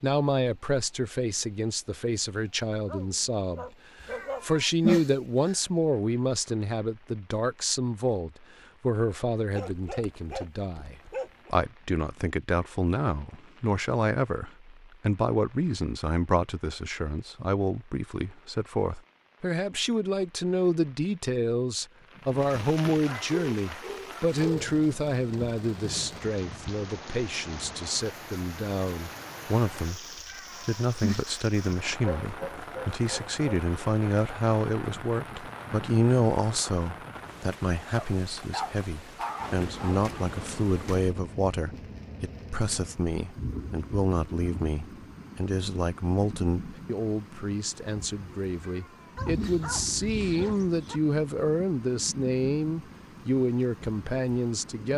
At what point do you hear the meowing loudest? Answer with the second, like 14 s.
5 s.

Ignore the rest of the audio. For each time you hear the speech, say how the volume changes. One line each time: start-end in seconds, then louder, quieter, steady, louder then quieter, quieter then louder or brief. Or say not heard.
0.0-54.9 steady.